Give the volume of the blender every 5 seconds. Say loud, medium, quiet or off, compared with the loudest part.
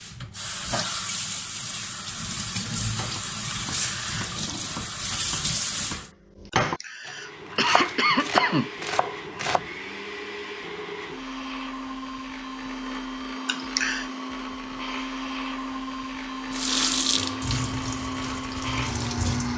off, medium, loud, loud.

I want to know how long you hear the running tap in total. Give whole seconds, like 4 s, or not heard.
9 s.